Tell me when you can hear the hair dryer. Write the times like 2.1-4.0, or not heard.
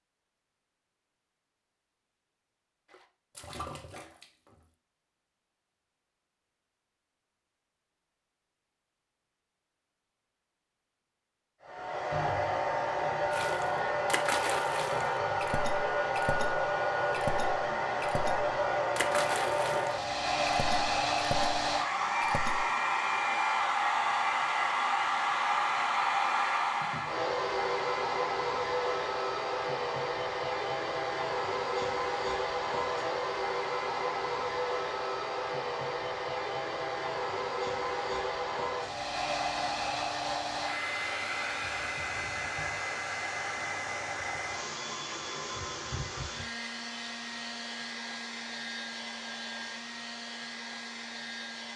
11.6-51.7.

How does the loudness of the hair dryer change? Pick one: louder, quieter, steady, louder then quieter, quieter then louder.
quieter.